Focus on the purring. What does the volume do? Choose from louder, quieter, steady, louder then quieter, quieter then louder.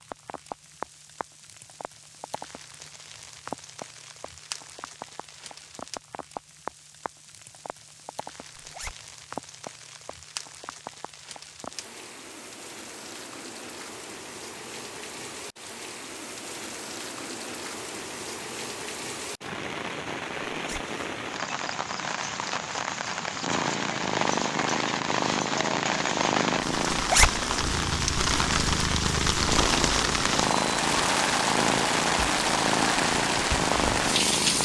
steady.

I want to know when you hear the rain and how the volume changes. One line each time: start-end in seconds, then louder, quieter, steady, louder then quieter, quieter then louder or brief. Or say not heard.
0.0-34.6 louder.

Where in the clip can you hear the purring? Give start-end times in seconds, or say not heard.
23.4-34.6.